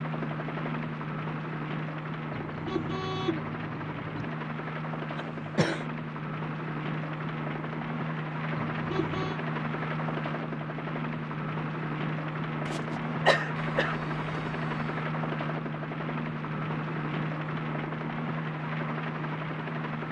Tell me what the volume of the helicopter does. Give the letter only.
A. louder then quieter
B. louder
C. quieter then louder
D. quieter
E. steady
E.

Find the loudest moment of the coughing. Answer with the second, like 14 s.
13 s.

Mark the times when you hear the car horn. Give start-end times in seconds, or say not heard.
2.3-4.3, 8.6-9.4, 13.6-15.1.